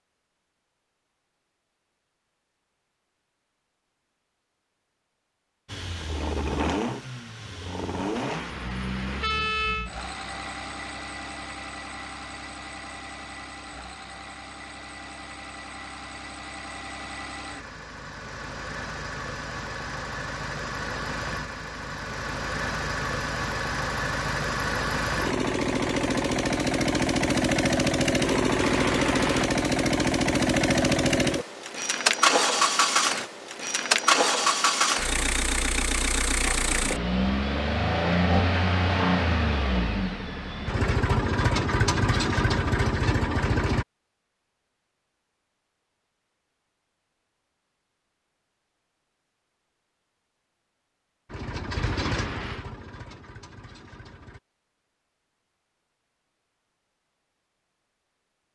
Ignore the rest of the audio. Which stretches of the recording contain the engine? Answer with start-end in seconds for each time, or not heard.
5.7-43.9, 51.2-54.4.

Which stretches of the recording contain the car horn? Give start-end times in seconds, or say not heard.
8.2-9.9, 28.6-29.5, 51.8-52.6.